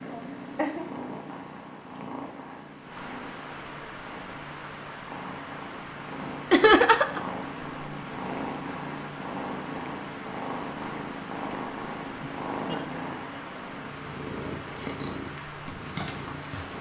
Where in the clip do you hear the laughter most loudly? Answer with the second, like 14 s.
7 s.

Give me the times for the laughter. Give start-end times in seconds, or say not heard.
0.1-0.8, 6.5-7.2, 12.2-13.4.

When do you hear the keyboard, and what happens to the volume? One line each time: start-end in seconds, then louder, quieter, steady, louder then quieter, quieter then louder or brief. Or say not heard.
not heard.